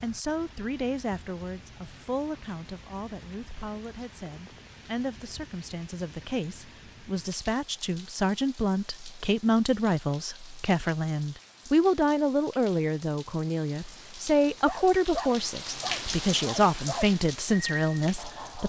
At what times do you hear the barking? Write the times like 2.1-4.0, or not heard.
14.7-18.6.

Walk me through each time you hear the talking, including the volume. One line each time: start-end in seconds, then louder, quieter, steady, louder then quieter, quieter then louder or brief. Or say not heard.
0.0-18.6 louder.